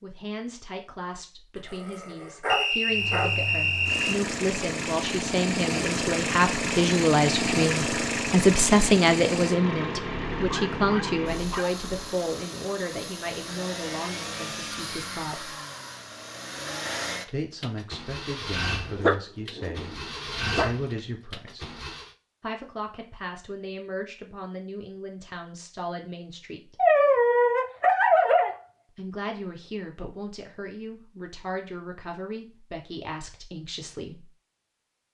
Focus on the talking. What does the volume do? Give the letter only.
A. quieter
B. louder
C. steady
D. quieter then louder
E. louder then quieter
E.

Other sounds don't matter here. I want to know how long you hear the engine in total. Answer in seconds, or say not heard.
19 s.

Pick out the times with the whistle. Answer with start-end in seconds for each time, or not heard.
2.5-4.2.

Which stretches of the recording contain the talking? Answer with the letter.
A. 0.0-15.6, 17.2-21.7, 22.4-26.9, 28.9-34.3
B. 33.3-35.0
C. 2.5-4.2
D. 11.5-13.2
A.